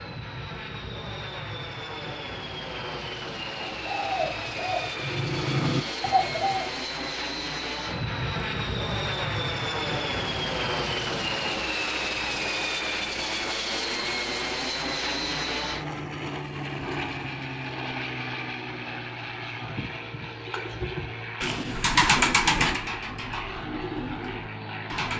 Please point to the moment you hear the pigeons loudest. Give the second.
22 s.